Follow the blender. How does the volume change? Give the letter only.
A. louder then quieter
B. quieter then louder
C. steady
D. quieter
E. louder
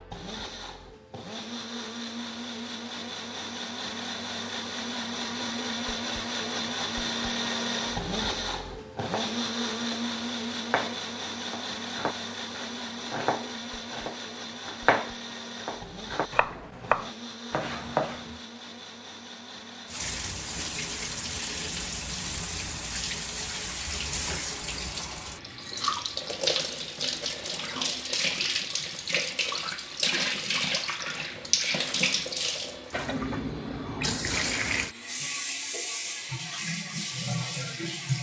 D.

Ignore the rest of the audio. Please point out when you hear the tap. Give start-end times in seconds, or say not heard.
19.9-38.1.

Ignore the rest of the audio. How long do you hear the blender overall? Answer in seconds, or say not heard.
38 s.